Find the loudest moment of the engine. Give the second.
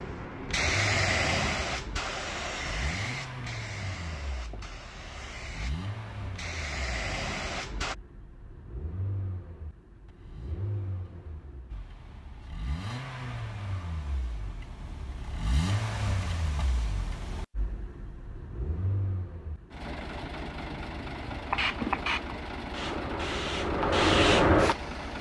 16 s.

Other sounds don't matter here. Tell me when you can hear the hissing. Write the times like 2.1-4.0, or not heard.
0.0-8.0, 21.4-25.1.